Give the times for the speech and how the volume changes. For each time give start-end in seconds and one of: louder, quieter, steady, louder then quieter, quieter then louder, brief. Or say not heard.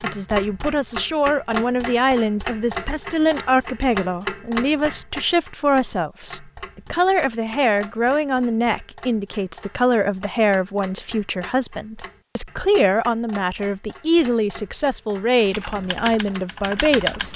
0.0-17.3 steady.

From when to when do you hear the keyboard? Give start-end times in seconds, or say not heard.
15.4-17.3.